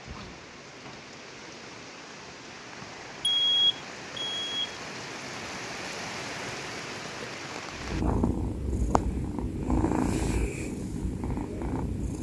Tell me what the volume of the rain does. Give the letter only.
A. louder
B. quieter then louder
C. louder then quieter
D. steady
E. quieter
A.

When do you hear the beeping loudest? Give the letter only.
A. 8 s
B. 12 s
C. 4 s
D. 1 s
C.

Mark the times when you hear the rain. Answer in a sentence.
You can hear the rain from 0.0 to 8.1 s.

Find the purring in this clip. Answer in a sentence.
You can hear the purring from 7.7 to 12.1 s.